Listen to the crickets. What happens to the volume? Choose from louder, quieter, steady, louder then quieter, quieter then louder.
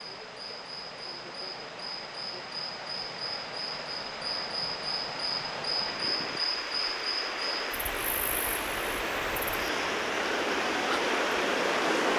louder then quieter.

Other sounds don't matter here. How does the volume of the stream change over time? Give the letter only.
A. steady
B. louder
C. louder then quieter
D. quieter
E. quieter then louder
B.